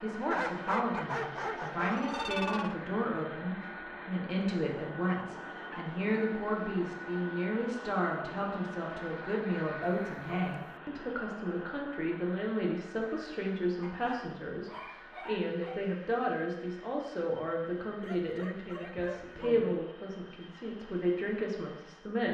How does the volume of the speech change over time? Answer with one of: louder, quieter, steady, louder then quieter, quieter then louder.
steady.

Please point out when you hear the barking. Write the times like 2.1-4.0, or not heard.
0.3-2.8, 5.0-6.0, 9.8-10.8, 13.8-15.8, 18.0-19.8.